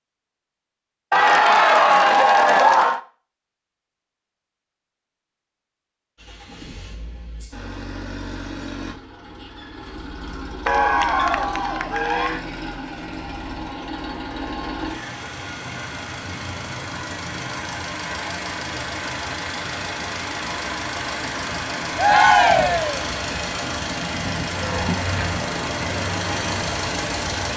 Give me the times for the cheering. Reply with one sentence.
The cheering can be heard from 1.1 to 3.0 s, from 10.7 to 12.4 s and from 21.9 to 23.0 s.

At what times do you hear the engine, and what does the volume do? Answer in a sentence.
The engine can be heard from 6.2 to 27.5 s, getting louder.